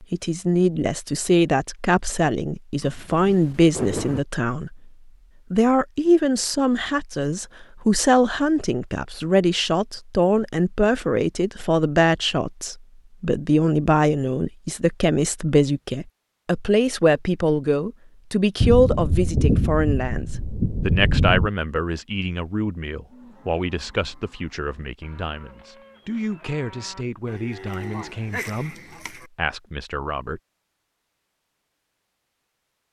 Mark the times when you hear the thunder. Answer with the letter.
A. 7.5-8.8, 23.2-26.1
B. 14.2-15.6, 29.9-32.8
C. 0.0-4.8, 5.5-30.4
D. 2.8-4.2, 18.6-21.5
D.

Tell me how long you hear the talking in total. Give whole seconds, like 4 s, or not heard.
30 s.